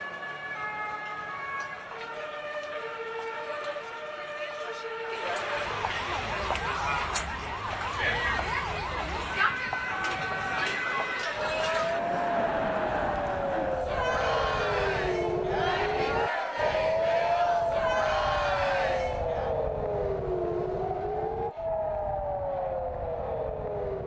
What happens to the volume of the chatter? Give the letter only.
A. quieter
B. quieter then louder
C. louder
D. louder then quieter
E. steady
C.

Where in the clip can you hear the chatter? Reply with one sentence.
The chatter can be heard from 0.0 to 19.6 s.